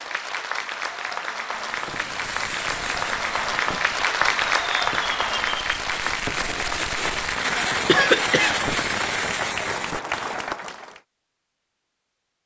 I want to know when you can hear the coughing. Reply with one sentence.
You can hear the coughing from 7.8 to 8.7 s.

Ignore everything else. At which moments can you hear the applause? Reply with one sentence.
The applause can be heard from 0.0 to 11.0 s.